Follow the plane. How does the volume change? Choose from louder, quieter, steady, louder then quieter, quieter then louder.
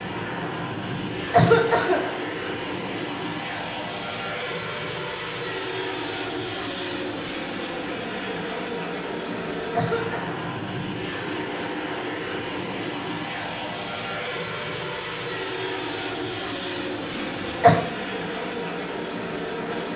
steady.